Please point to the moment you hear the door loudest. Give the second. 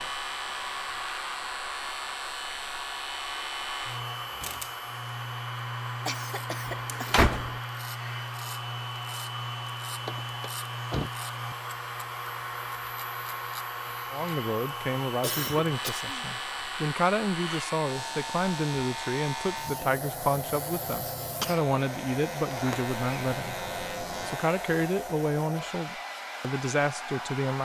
7 s.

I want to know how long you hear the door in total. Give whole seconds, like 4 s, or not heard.
4 s.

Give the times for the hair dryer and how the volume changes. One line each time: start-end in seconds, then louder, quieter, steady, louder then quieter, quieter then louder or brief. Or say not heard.
0.0-27.6 steady.